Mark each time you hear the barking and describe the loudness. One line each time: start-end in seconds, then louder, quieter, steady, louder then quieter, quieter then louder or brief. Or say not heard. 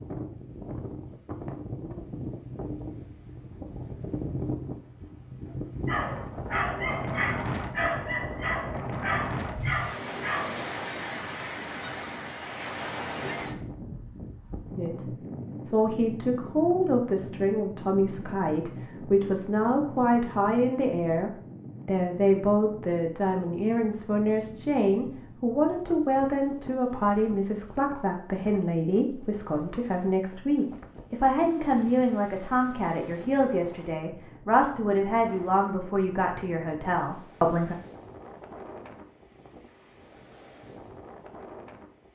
5.8-10.7 steady.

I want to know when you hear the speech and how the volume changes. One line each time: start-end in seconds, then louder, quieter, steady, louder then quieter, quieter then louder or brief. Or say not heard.
14.8-37.8 steady.